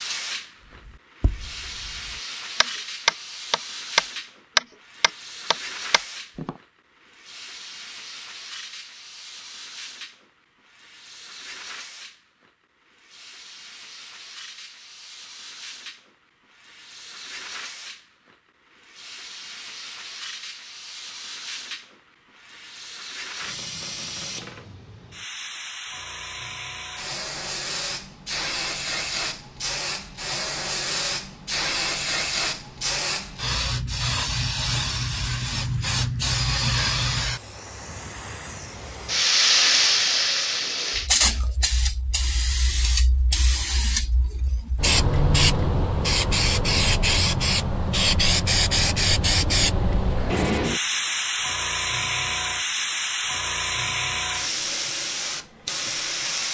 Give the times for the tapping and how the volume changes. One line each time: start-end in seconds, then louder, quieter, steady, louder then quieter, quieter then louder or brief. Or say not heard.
0.8-6.5 louder then quieter.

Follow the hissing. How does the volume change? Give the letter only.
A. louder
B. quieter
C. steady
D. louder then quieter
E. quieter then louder
A.